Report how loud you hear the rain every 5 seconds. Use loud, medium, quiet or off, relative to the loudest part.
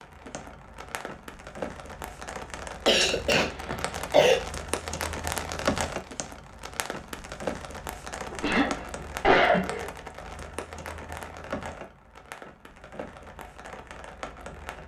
loud, loud, medium.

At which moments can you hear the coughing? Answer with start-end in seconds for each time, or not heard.
2.9-4.4, 8.3-9.8.